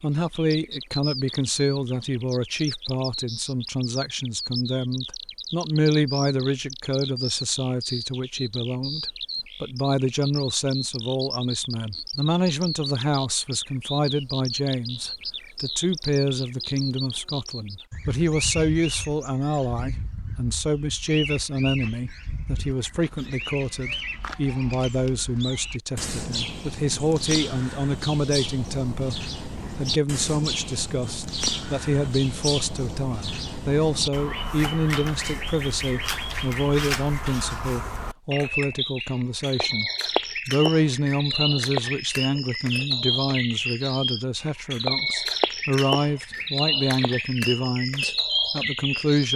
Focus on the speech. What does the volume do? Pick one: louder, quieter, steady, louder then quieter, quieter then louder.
steady.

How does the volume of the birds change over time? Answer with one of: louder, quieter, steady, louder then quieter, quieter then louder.
louder.